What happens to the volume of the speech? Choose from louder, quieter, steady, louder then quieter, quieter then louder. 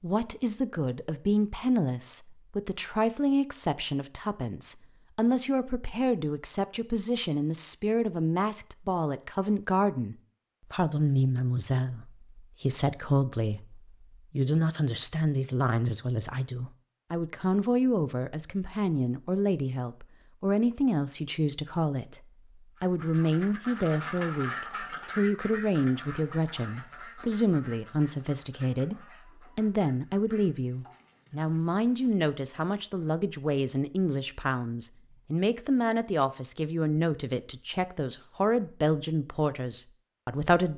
steady.